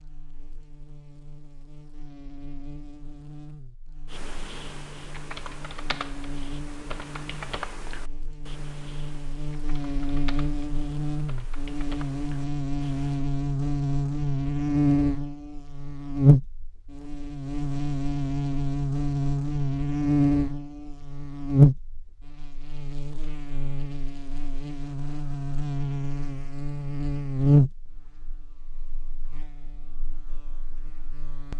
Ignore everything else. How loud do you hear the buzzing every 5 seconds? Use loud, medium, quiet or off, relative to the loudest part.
quiet, quiet, loud, loud, loud, loud, quiet.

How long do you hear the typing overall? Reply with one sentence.
You can hear the typing for 9 seconds altogether.